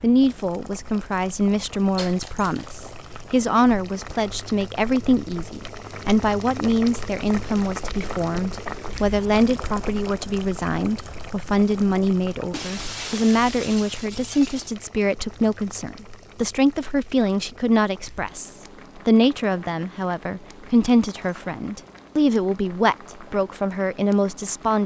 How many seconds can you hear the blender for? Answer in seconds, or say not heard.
not heard.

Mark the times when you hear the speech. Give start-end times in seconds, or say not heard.
0.0-24.8.